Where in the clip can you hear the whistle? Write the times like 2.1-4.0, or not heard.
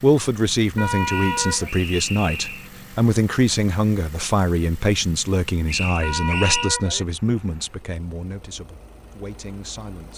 1.1-2.7, 5.7-6.7.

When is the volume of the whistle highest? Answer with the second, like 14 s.
6 s.